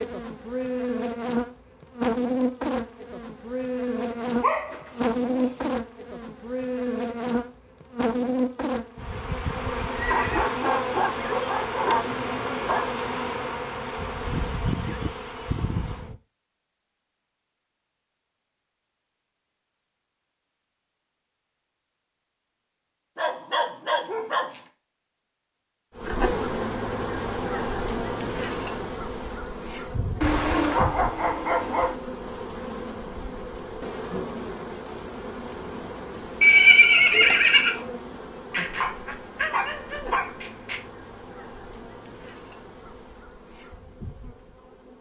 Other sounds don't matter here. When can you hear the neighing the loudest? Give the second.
37 s.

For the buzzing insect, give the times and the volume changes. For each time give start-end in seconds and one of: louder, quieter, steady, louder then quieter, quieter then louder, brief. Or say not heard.
0.0-16.1 steady
25.9-44.9 quieter.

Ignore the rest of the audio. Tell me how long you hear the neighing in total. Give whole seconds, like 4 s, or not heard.
2 s.